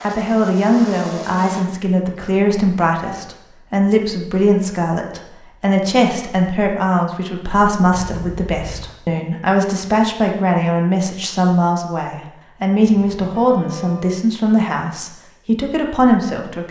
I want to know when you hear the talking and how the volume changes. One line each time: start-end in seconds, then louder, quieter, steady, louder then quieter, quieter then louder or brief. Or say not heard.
0.0-16.6 steady.